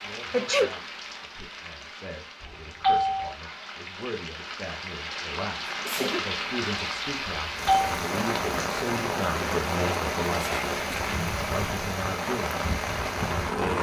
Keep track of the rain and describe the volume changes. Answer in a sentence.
The loudness of the rain goes up.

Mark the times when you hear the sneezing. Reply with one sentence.
The sneezing can be heard from 0.3 to 0.8 s, from 5.7 to 6.2 s and from 10.3 to 11.0 s.